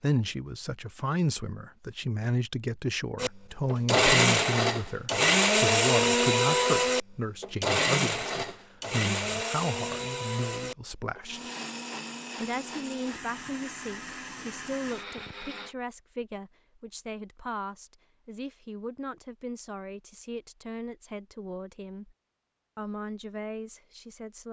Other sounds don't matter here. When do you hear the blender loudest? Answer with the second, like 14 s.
6 s.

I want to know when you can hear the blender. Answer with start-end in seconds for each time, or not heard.
3.1-15.8.